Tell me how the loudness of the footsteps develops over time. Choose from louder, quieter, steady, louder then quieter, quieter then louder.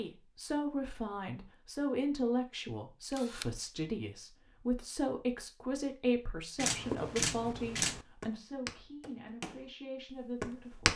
louder.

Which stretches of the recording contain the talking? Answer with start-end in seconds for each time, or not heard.
0.0-10.9.